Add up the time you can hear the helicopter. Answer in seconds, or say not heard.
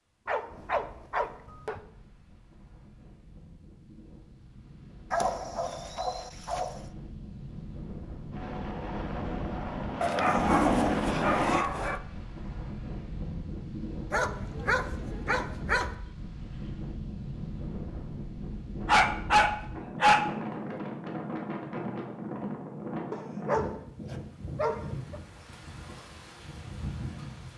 3 s.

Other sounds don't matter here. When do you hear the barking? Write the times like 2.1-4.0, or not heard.
0.2-1.8, 5.1-6.8, 10.0-12.0, 14.1-15.9, 18.9-20.8, 23.1-25.2.